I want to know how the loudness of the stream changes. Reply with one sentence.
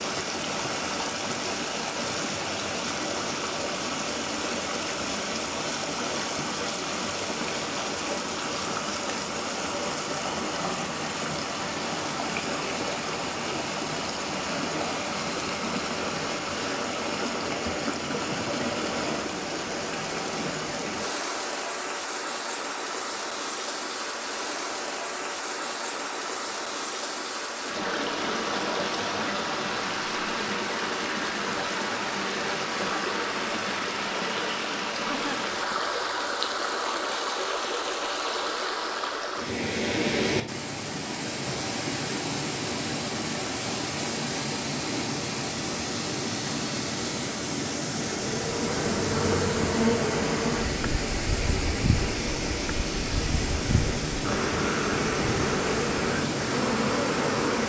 The volume of the stream stays about the same.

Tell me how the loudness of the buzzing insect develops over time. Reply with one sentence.
The volume of the buzzing insect goes down, then up.